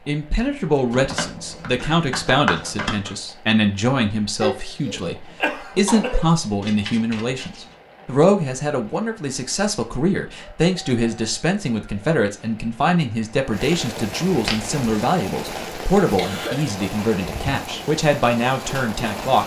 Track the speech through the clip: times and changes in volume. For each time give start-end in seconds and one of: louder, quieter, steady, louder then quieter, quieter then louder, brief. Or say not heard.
0.1-19.4 steady.